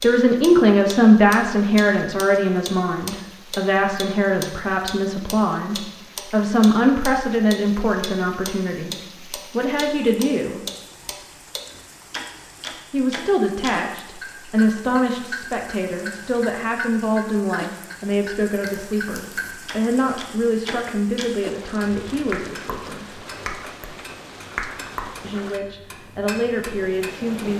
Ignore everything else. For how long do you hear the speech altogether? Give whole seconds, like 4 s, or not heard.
23 s.